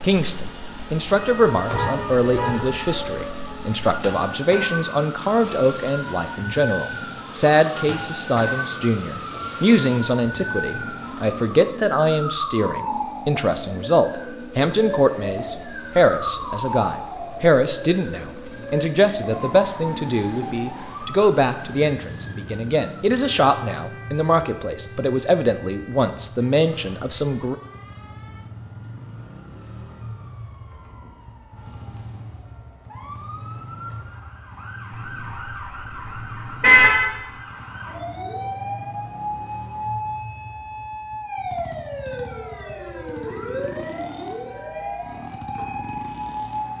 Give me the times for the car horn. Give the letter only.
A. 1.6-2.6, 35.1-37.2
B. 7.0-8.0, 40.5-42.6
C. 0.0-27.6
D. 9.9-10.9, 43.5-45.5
A.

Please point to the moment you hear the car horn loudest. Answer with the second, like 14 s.
37 s.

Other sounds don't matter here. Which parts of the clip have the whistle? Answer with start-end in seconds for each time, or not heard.
not heard.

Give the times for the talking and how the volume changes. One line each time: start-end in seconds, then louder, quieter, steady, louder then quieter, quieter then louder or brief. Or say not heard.
0.0-27.6 steady.